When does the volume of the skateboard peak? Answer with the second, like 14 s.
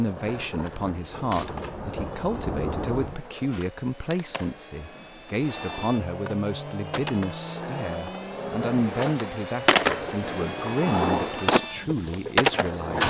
12 s.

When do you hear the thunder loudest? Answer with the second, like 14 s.
3 s.